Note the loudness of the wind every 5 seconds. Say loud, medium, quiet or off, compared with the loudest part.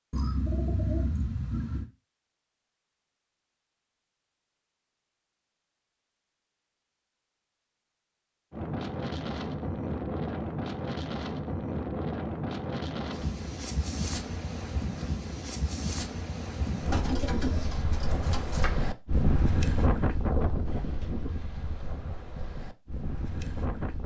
off, loud, loud, loud, loud.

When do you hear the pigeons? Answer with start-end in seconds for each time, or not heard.
0.1-1.9, 16.9-18.7.